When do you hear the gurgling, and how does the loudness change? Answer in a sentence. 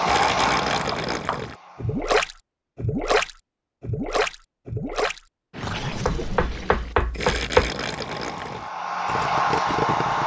The gurgling can be heard from 0.0 to 10.2 s, getting quieter.